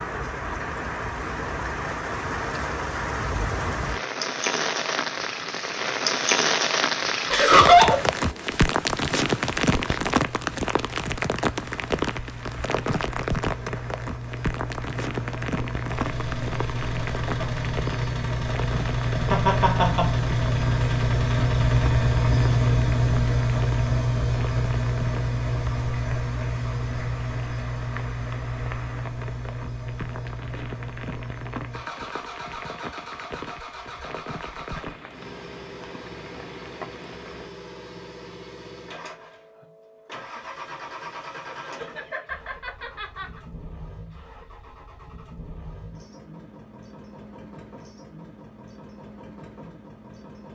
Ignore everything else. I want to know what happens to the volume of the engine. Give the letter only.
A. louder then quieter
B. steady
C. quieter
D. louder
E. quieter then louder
A.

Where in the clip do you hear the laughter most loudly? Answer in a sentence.
The loudest moment of the laughter is at 8 seconds.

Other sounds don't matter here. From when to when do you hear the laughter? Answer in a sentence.
The laughter can be heard from 7.3 to 8.0 s, from 19.3 to 20.1 s and from 41.3 to 43.4 s.